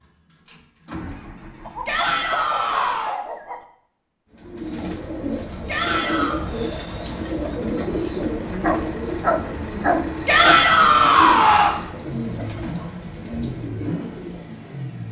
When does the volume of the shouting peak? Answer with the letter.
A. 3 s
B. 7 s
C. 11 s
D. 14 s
C.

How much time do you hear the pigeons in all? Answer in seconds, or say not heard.
11 s.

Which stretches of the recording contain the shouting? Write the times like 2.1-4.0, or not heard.
1.9-3.2, 5.7-6.4, 10.2-11.8.